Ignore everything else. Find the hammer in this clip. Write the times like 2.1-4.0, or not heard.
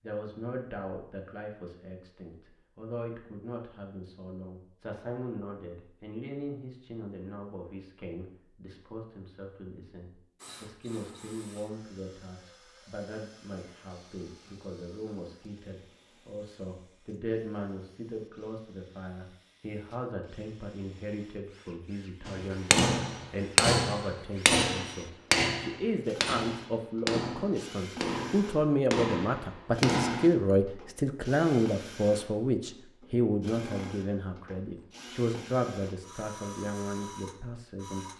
22.2-30.3.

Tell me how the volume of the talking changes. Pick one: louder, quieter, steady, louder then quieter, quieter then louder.
louder.